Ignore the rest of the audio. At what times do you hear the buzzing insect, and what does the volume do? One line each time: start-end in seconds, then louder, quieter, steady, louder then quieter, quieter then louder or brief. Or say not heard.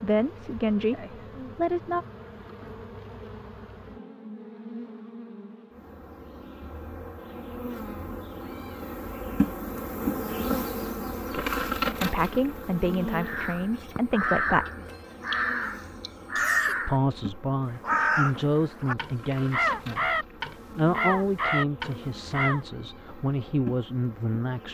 0.0-24.6 louder then quieter.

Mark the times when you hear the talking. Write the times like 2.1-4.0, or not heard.
0.0-2.0, 11.3-14.7, 16.8-20.1, 20.8-24.6.